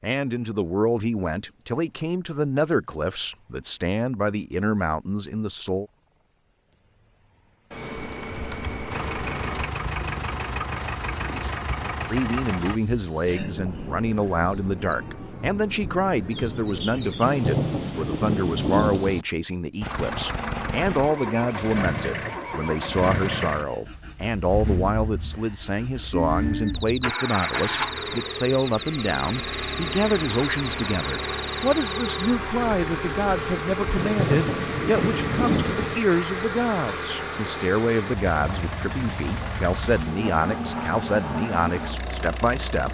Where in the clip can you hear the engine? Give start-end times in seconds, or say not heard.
8.9-12.8, 19.8-42.8.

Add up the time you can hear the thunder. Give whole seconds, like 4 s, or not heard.
4 s.